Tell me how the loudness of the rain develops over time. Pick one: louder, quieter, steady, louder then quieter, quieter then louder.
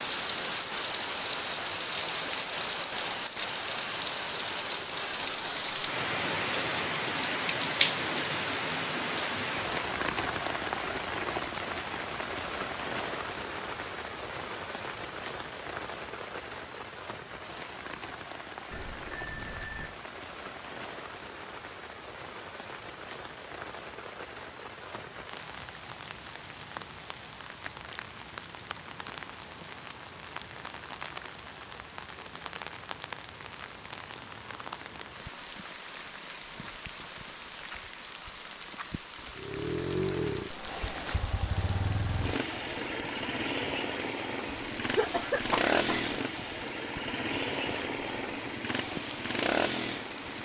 quieter.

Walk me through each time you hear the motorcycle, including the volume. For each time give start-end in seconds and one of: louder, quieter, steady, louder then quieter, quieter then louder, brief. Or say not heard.
39.4-50.3 steady.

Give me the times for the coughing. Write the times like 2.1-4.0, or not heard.
44.9-46.1.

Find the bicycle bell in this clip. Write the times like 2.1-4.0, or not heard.
18.7-20.0.